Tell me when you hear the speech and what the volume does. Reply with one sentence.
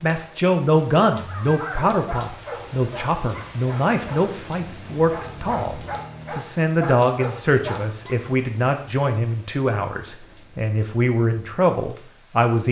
You can hear the speech from 0.0 to 12.6 s, at a steady volume.